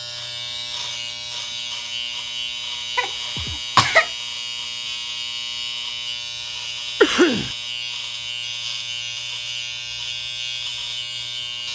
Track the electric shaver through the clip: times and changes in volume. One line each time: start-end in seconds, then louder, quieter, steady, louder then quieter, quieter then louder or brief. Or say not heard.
0.0-11.7 steady.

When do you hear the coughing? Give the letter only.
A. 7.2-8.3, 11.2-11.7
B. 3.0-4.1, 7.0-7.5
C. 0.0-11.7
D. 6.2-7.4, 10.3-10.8
B.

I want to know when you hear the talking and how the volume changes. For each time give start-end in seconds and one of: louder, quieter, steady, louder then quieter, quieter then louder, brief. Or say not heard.
not heard.